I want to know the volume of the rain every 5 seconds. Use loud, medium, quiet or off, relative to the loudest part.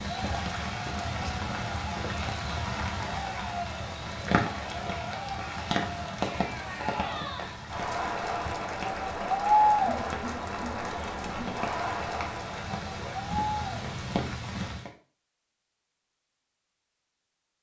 loud, loud, loud, off.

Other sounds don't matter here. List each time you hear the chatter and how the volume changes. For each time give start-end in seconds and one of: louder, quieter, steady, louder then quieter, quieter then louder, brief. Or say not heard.
0.1-14.0 louder then quieter.